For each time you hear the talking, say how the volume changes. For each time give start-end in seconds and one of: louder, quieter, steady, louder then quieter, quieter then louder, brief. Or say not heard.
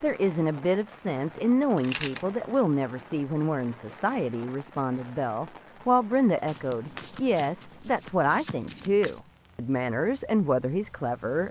0.0-11.4 steady.